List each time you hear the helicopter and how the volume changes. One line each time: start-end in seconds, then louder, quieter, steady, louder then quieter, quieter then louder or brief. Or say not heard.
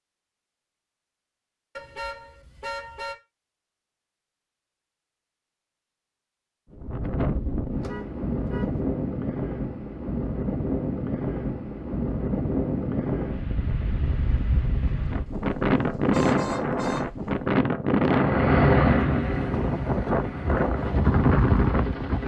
18.1-22.2 quieter.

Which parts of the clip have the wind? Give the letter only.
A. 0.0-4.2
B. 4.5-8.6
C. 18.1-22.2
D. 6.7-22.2
D.